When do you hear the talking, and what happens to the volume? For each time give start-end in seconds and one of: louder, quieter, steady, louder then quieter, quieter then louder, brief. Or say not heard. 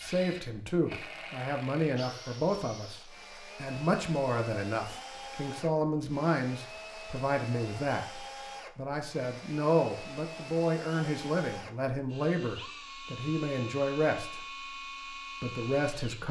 0.0-14.7 steady
15.4-16.2 brief.